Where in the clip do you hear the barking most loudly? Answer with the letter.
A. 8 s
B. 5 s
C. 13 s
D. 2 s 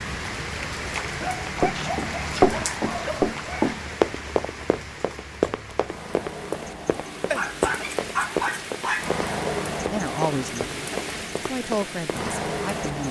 A.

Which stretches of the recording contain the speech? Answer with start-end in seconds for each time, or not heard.
9.8-13.0.